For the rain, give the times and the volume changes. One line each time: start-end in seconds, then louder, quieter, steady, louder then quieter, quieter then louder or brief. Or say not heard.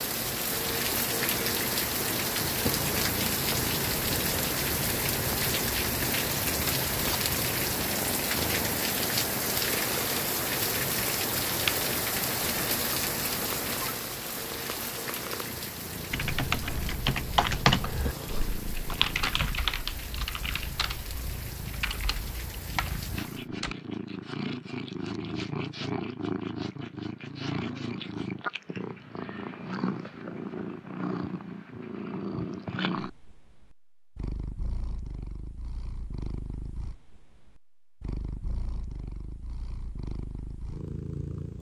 0.0-23.4 quieter.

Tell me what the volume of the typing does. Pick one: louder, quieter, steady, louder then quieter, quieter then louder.
quieter.